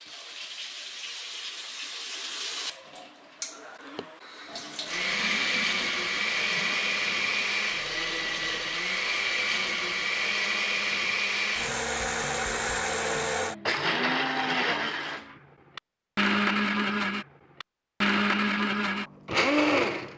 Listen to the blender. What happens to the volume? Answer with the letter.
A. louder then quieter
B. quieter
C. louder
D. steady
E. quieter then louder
D.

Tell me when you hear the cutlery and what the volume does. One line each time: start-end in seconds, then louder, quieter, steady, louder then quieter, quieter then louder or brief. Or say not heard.
not heard.